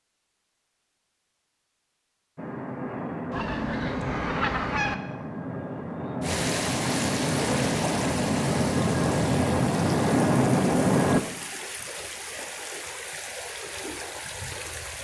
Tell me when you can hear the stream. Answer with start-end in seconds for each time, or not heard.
6.2-14.9.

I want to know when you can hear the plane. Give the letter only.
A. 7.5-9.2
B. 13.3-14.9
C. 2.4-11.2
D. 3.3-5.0
C.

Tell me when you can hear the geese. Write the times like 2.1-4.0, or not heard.
3.3-5.0.